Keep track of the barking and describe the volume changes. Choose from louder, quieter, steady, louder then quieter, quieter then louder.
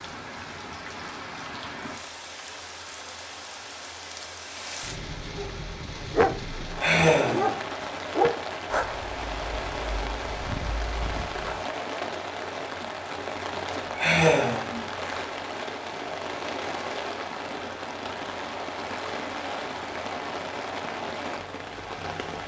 quieter then louder.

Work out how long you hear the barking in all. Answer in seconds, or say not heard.
6 s.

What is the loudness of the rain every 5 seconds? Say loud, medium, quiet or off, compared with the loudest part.
medium, loud, loud, loud, loud.